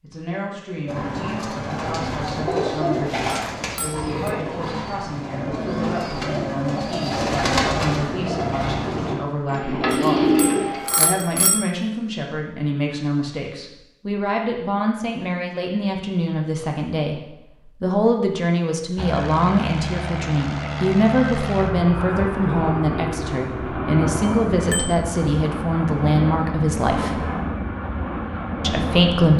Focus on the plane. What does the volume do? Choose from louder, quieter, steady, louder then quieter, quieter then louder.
steady.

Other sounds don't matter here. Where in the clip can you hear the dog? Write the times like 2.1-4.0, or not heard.
not heard.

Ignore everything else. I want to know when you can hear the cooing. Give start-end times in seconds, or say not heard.
0.8-11.1.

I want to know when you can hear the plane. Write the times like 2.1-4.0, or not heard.
18.9-29.3.